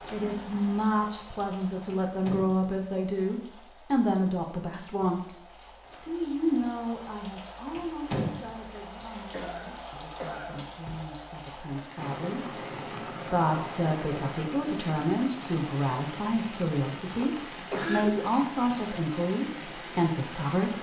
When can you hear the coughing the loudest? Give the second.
18 s.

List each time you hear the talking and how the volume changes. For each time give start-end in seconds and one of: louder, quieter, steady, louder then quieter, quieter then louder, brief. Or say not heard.
0.1-20.7 quieter then louder.